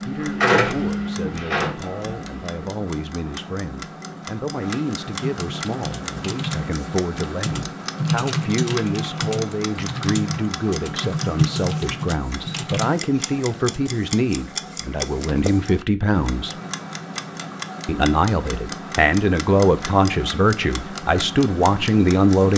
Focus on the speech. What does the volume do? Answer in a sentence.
The volume of the speech goes up.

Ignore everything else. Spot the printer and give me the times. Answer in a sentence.
The printer can be heard from 0.0 to 2.6 s.